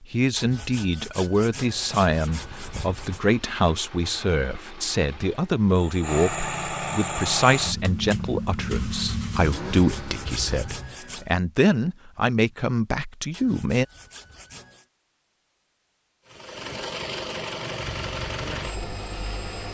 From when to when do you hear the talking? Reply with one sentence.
The talking can be heard from 0.0 to 13.8 s.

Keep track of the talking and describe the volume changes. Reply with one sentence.
The volume of the talking stays about the same.